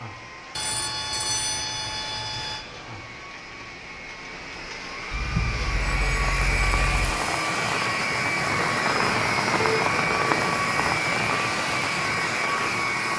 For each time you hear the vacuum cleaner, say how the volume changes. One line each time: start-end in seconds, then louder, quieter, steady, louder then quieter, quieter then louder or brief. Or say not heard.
0.0-13.1 louder.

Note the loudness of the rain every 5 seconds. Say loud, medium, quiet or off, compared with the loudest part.
quiet, loud, loud.